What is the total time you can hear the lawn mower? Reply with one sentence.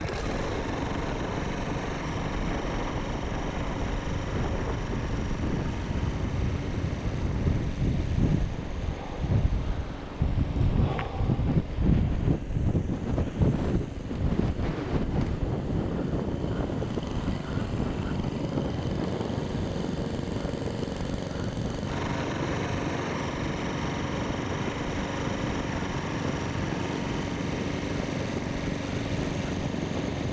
You can hear the lawn mower for 30 seconds altogether.